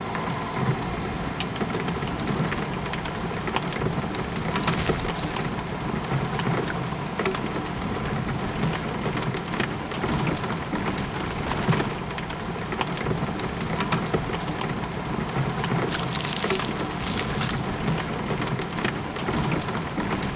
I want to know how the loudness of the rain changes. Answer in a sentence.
The volume of the rain stays about the same.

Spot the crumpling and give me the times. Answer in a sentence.
You can hear the crumpling from 4.5 to 5.5 s and from 15.8 to 17.6 s.